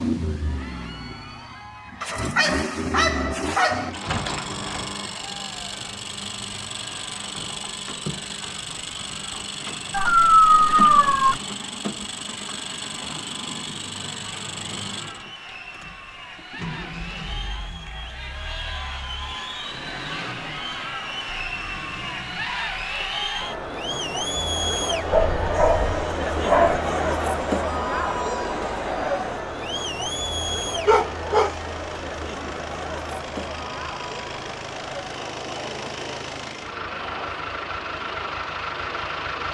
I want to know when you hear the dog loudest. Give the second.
10 s.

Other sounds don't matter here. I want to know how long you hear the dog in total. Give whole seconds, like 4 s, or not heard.
6 s.